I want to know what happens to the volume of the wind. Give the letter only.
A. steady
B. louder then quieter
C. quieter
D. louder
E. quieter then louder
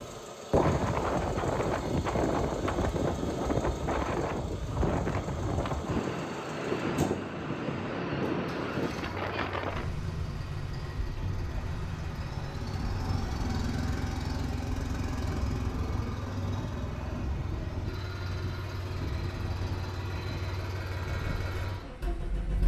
C.